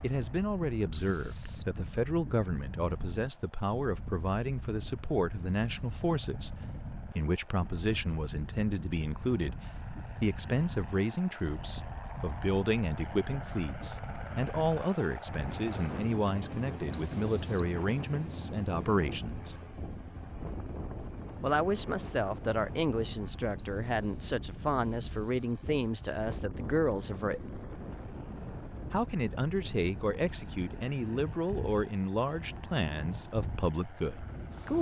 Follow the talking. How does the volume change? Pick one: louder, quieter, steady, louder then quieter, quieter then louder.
steady.